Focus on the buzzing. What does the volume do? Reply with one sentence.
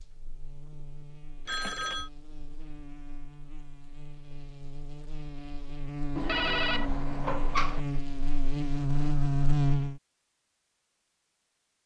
The volume of the buzzing goes up.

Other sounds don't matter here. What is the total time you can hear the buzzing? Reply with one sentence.
You can hear the buzzing for 10 seconds altogether.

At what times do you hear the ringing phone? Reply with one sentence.
The ringing phone can be heard from 1.4 to 2.1 s and from 6.2 to 7.8 s.